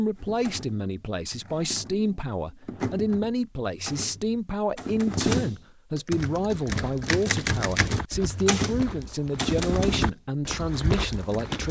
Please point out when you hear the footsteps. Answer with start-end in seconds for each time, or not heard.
6.1-11.6.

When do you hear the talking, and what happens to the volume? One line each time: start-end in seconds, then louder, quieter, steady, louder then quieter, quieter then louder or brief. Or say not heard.
0.0-11.6 steady.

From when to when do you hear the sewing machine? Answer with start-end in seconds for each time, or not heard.
not heard.